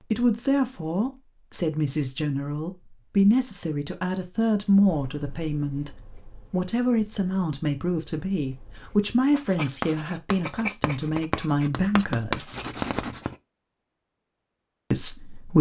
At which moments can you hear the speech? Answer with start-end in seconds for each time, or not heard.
0.0-12.7, 14.9-15.5.